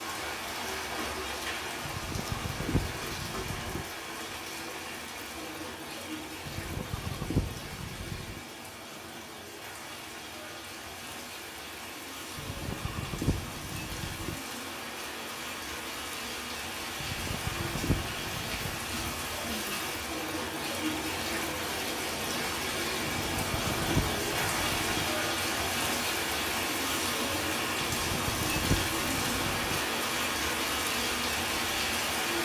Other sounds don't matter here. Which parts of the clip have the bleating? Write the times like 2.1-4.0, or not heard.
1.8-3.9, 6.5-8.4, 12.3-14.3, 16.9-18.9, 23.1-25.1, 27.8-29.8.